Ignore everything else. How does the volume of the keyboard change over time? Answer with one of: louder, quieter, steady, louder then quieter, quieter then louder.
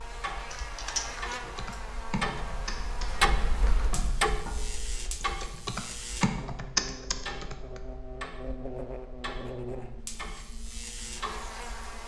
quieter then louder.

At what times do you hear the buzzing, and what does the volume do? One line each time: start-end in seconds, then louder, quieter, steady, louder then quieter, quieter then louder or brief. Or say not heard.
0.0-12.0 steady.